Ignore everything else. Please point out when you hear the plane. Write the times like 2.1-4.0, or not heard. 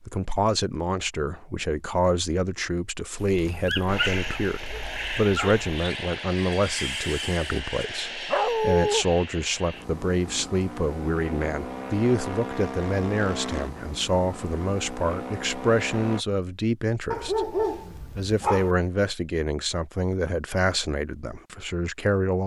3.9-16.2.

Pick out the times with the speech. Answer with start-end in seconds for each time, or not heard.
0.1-22.4.